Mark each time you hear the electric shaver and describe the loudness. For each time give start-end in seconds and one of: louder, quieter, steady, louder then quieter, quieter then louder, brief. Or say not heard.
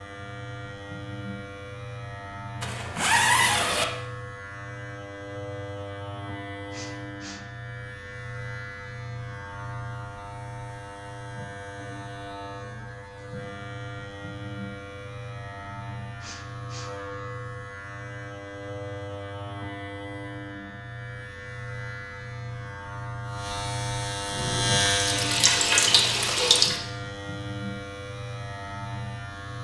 0.0-29.5 louder.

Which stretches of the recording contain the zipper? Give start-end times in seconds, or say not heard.
2.6-3.9.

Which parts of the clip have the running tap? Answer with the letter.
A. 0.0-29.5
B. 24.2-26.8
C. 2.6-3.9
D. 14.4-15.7
B.